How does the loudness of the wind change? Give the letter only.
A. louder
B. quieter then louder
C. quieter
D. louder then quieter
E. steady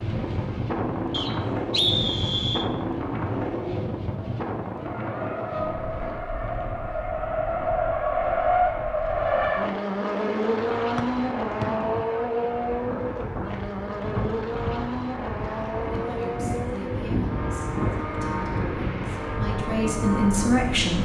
B.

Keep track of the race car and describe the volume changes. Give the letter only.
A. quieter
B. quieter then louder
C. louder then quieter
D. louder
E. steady
C.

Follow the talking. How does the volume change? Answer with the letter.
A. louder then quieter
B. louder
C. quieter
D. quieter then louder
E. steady
B.